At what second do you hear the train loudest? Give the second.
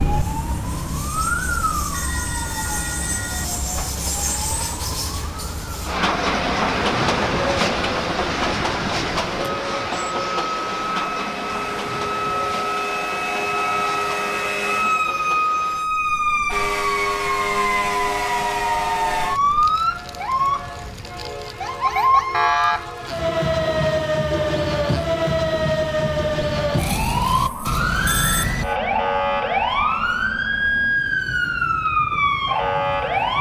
7 s.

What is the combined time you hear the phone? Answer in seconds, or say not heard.
2 s.